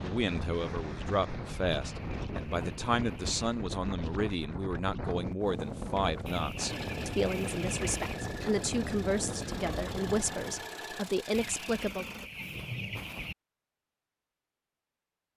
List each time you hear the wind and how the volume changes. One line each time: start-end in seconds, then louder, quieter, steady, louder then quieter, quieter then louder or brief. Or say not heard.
0.0-10.7 steady.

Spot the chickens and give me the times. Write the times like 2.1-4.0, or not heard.
1.4-3.4, 6.2-8.2, 11.3-13.3.